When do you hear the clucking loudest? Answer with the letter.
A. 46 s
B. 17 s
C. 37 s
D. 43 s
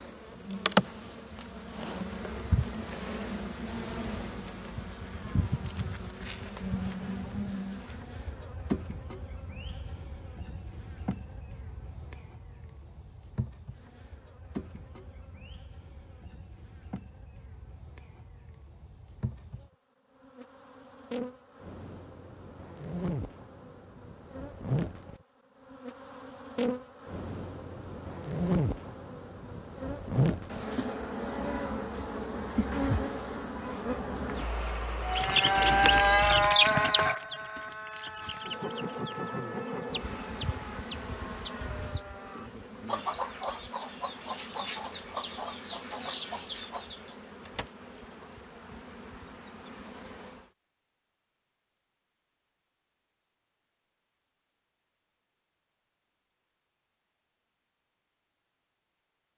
C.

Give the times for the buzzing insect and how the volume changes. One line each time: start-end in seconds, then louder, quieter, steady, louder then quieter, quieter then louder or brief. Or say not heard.
0.0-36.5 quieter then louder
38.4-50.5 quieter.